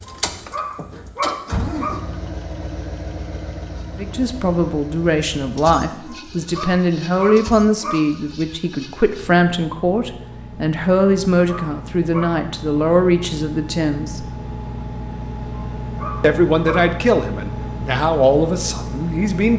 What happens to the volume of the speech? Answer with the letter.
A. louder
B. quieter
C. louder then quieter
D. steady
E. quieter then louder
D.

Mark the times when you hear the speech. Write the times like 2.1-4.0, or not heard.
4.0-14.2, 16.2-19.5.